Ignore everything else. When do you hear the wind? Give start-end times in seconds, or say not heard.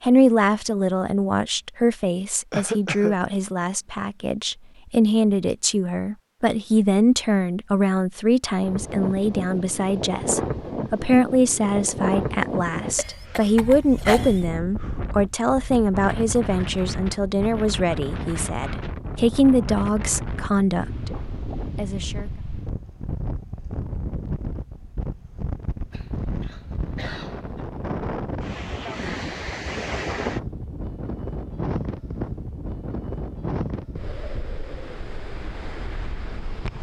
8.6-36.7.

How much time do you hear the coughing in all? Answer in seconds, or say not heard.
4 s.